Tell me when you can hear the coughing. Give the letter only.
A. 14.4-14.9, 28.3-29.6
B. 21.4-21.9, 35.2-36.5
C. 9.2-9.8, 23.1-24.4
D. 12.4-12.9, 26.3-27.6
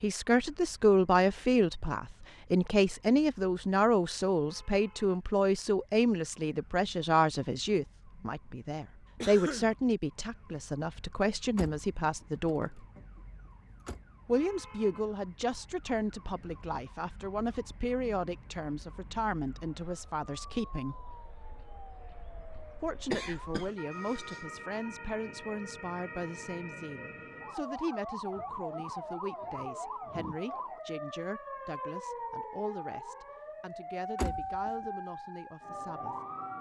C.